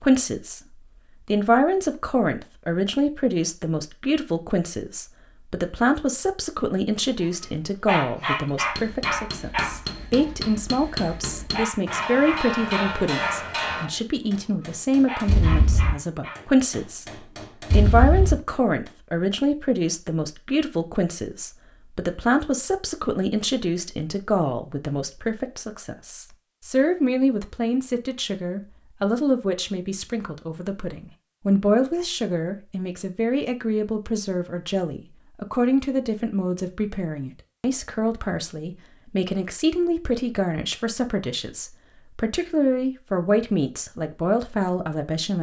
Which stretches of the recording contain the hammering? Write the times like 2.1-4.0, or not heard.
8.4-18.6.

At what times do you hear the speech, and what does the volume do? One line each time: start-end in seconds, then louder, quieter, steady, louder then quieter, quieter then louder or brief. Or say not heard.
0.0-45.3 steady.